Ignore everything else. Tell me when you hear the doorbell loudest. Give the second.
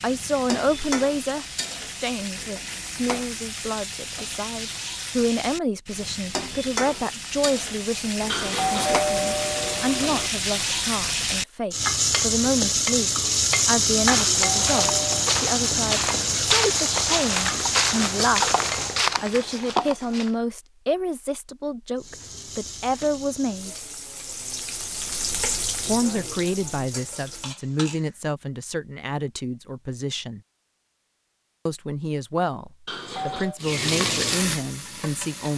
9 s.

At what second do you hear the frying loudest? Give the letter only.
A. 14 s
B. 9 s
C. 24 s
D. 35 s
A.